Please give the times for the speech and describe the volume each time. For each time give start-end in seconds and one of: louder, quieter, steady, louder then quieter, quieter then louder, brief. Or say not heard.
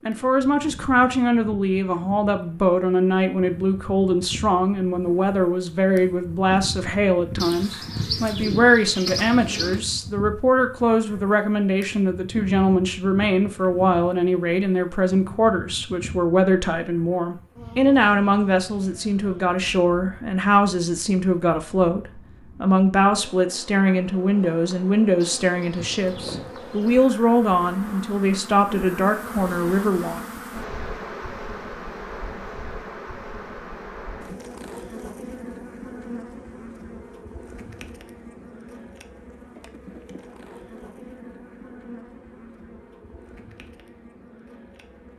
0.1-30.2 steady.